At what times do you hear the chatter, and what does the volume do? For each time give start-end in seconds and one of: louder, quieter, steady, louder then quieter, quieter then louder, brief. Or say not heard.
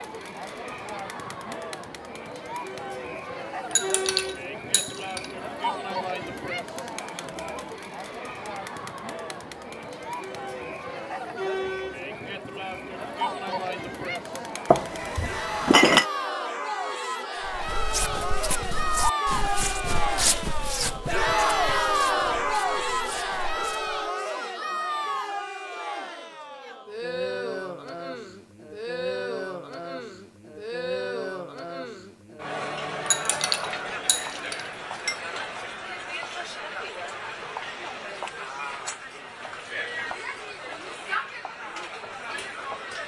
0.0-43.0 louder then quieter.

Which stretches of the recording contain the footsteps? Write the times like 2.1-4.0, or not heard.
17.4-24.1.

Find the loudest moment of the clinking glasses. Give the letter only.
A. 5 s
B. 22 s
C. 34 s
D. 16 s
D.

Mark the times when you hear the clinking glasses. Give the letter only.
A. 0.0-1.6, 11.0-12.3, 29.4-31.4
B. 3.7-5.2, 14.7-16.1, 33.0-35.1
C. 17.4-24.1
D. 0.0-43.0
B.